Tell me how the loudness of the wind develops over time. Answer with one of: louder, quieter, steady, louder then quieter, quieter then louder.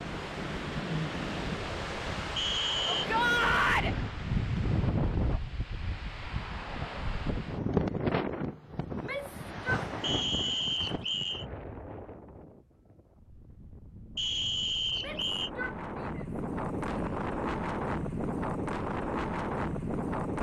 quieter then louder.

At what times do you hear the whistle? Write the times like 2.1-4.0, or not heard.
2.4-3.1, 10.0-11.4, 14.2-15.5.